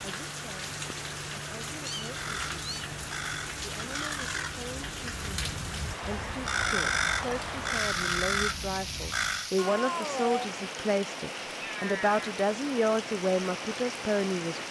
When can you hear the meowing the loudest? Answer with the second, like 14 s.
10 s.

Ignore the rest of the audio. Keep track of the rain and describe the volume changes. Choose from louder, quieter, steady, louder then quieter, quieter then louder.
steady.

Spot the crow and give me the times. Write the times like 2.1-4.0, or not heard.
2.0-9.5.